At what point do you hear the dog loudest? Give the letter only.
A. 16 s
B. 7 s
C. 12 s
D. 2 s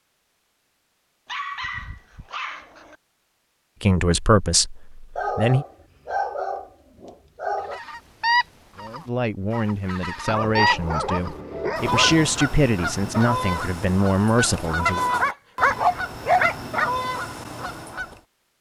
A.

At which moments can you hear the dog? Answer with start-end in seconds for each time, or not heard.
1.2-3.0, 5.2-7.8, 10.2-12.3, 14.8-16.9.